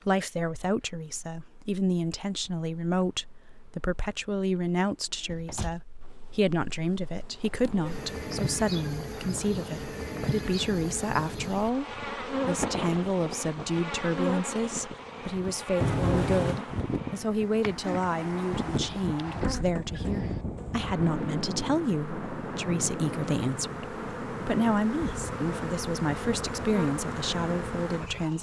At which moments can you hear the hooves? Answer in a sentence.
The hooves can't be heard in this clip.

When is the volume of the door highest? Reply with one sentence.
The volume of the door peaks at 16 seconds.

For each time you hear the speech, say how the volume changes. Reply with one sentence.
You can hear the speech from 0.1 to 28.3 s, at a steady volume.